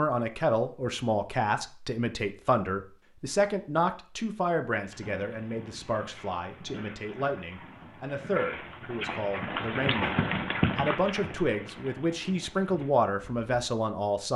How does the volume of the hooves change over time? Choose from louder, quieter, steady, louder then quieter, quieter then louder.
louder then quieter.